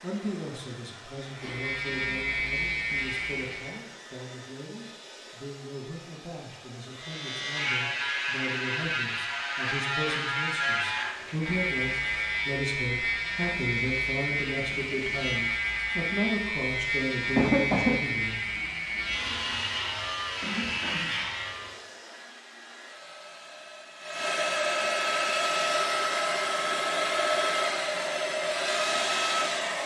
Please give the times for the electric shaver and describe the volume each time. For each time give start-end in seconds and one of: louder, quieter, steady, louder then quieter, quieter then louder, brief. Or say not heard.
1.3-3.8 brief
6.9-21.8 steady.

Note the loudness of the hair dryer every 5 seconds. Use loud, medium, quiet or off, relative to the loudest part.
quiet, quiet, quiet, quiet, medium, loud.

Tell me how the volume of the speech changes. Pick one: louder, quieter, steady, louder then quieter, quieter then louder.
louder.